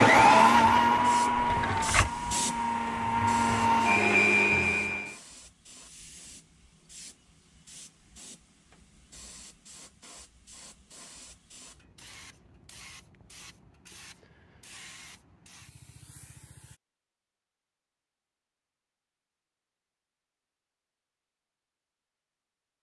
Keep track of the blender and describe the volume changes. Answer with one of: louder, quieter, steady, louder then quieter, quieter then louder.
quieter then louder.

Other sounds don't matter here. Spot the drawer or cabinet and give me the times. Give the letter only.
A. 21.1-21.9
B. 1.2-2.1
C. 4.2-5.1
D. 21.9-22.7
B.